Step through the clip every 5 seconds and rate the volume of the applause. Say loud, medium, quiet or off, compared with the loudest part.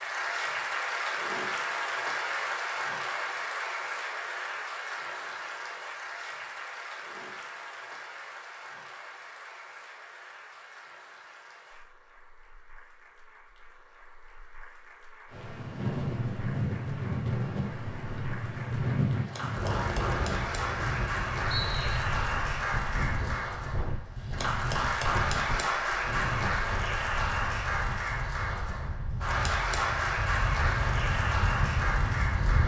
loud, medium, quiet, quiet, loud, loud, loud.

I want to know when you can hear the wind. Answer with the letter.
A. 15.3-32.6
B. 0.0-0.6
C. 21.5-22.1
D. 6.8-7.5
A.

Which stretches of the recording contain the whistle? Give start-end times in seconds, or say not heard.
21.5-22.1.